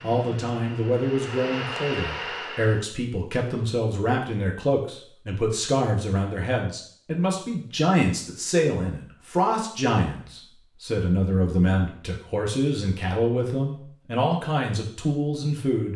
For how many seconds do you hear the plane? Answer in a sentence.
The plane can be heard for 3 seconds in total.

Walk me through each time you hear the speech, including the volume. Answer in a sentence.
The speech can be heard from 0.0 to 15.9 s, at a steady volume.